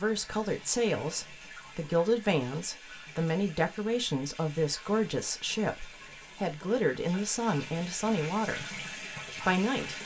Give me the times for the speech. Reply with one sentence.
You can hear the speech from 0.0 to 8.7 s and from 9.4 to 10.0 s.